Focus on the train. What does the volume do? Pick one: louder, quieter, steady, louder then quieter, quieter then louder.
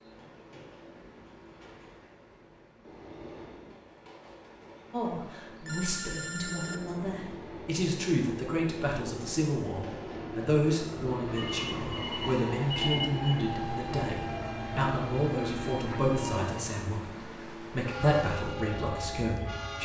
louder.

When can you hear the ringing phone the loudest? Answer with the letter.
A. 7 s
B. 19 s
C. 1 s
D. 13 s
D.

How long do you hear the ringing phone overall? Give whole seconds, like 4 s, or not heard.
3 s.